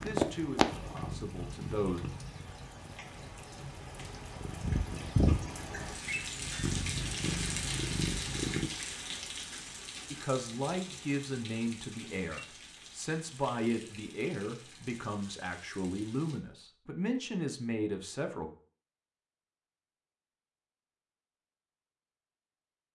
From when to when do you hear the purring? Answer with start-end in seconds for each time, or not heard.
0.0-8.7.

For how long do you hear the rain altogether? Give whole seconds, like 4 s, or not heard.
16 s.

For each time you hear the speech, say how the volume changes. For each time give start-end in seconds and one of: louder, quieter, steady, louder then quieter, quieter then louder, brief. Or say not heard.
0.0-2.0 brief
10.1-18.5 steady.